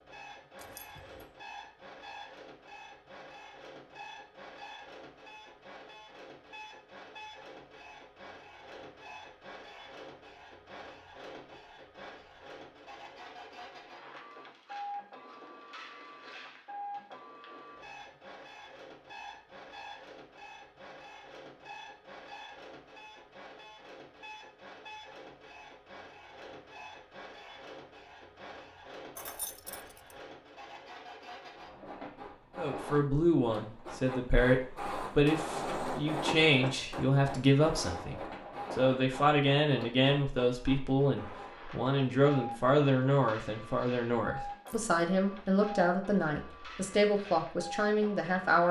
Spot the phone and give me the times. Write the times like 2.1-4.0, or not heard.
not heard.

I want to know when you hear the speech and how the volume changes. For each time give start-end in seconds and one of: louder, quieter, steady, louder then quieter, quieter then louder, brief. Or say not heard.
32.5-48.6 steady.